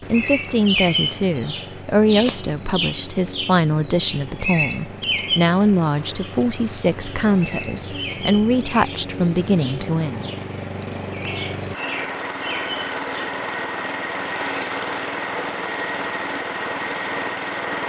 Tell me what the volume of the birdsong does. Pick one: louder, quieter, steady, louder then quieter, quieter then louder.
quieter.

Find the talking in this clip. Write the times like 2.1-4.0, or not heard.
0.1-10.3.